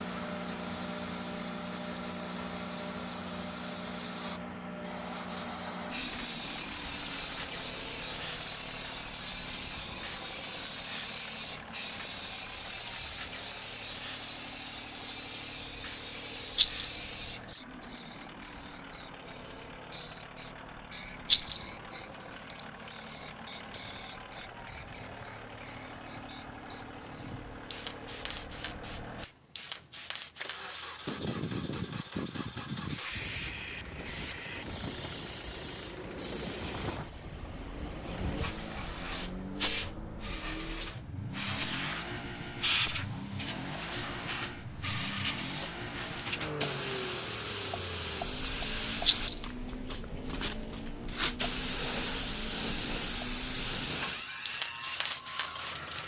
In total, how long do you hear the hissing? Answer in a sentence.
The hissing can be heard for 56 seconds in total.